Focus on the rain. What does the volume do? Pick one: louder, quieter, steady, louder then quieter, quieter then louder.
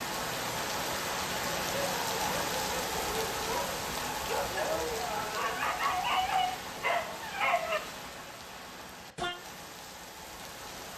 quieter.